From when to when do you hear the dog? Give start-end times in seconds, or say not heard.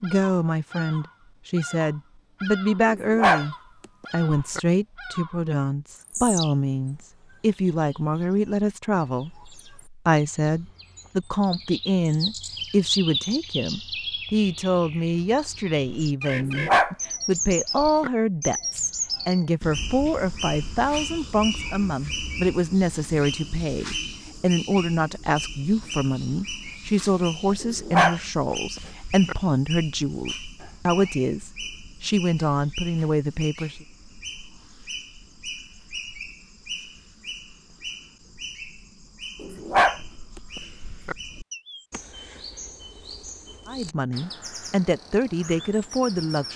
2.9-4.6, 16.4-18.1, 27.6-29.4, 39.4-40.0, 40.5-41.1.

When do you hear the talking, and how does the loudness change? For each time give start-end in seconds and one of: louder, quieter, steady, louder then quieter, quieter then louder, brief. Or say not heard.
0.0-33.8 steady
43.6-46.5 brief.